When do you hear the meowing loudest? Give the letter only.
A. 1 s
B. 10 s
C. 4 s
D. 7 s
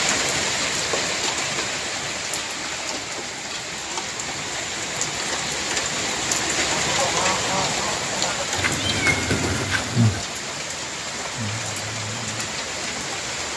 B.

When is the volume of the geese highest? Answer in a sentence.
The loudest moment of the geese is at 7 seconds.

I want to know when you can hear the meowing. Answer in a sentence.
The meowing can be heard from 8.6 to 10.2 s.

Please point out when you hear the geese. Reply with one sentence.
The geese can be heard from 6.7 to 8.4 s.